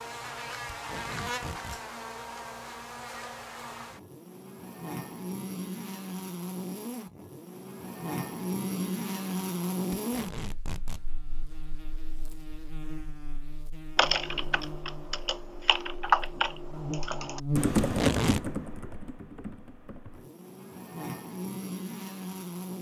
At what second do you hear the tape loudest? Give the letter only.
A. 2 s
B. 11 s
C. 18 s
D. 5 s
C.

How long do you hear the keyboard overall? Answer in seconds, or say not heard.
6 s.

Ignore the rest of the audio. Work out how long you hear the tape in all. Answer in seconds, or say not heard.
3 s.